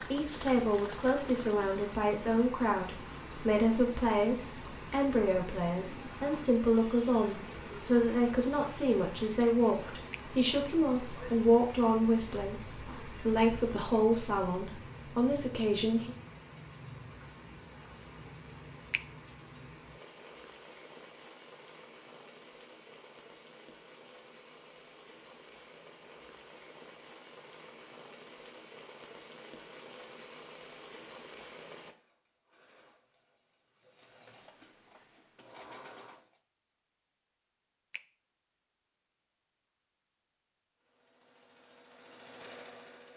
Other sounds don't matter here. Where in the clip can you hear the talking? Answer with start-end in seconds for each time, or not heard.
0.0-16.1.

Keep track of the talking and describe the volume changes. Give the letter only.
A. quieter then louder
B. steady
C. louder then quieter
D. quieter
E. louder
B.